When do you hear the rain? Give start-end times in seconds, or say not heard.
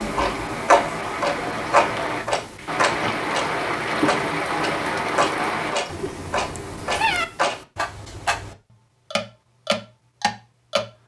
0.0-5.8.